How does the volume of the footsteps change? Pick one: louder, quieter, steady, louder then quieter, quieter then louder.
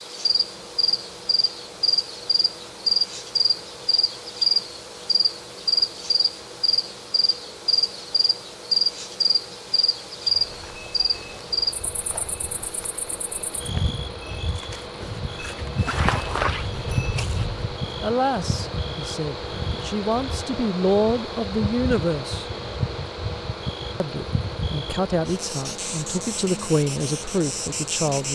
louder.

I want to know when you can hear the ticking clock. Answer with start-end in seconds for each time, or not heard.
not heard.